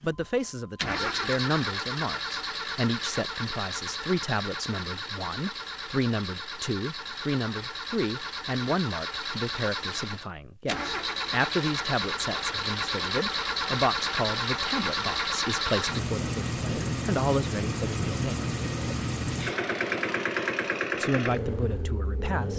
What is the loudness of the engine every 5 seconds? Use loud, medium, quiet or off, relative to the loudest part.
loud, medium, loud, loud, loud.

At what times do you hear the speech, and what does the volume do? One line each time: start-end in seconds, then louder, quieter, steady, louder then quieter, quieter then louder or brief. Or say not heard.
0.0-18.5 steady
20.9-22.5 brief.